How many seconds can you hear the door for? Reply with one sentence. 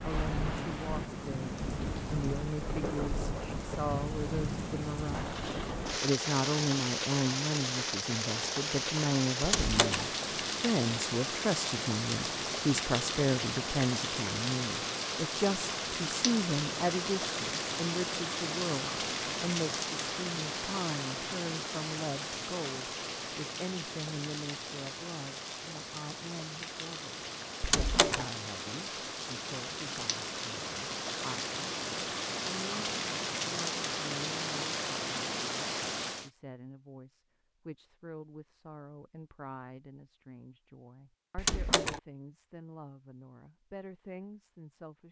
You can hear the door for 2 seconds altogether.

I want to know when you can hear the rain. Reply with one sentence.
The rain can be heard from 0.0 to 36.3 s.